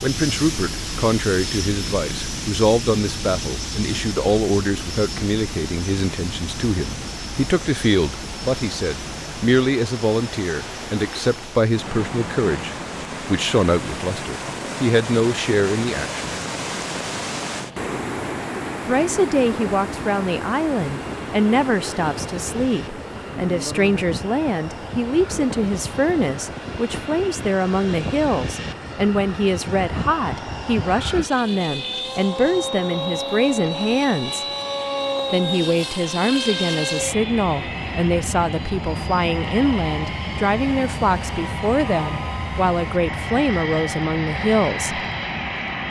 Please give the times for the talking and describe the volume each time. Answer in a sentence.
The talking can be heard from 0.0 to 16.2 s, at a steady volume; from 18.9 to 34.5 s, at a steady volume; and from 35.3 to 45.0 s, at a steady volume.